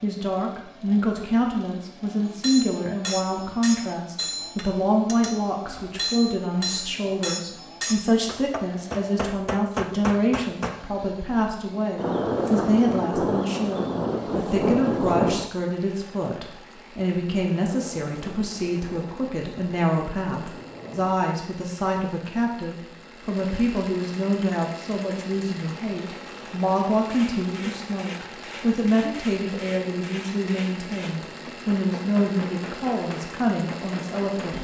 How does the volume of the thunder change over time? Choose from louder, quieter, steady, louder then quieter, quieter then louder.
quieter.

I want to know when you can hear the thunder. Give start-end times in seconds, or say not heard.
11.9-15.5, 17.6-21.1.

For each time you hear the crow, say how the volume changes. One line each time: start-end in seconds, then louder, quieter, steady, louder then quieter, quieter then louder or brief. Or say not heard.
not heard.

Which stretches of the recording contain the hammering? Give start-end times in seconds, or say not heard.
2.2-10.8, 27.1-34.5.